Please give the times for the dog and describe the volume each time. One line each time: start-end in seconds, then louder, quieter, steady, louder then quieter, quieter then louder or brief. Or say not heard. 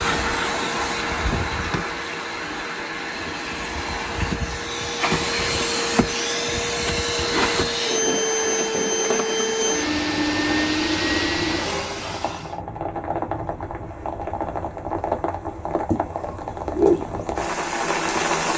not heard.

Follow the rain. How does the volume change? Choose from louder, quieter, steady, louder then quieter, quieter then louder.
louder.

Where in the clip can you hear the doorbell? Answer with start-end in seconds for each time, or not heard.
not heard.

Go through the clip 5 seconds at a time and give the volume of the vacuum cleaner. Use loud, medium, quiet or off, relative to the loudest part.
medium, loud, loud, off.